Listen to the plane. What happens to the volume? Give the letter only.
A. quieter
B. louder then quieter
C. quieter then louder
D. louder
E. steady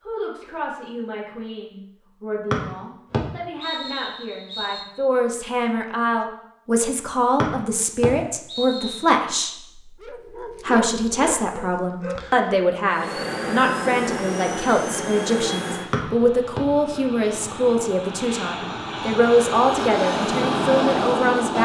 C.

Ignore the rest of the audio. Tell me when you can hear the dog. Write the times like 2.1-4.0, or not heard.
10.0-12.5.